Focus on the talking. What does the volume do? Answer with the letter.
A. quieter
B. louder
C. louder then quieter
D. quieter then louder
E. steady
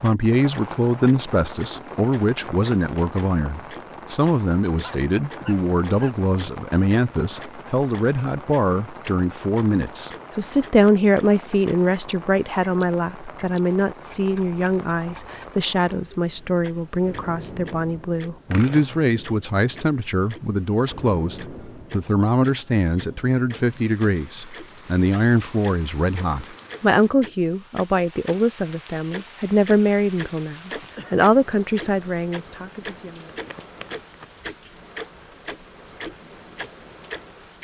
E.